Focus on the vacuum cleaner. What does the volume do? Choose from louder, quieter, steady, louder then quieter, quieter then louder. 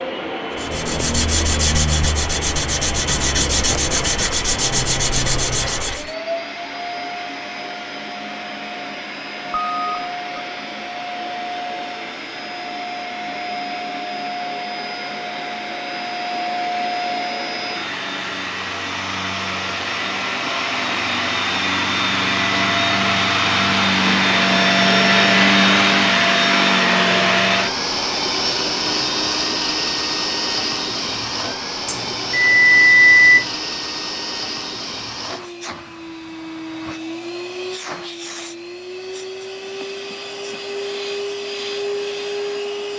louder then quieter.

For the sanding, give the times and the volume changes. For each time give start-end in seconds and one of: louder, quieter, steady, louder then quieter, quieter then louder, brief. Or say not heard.
0.6-6.1 steady.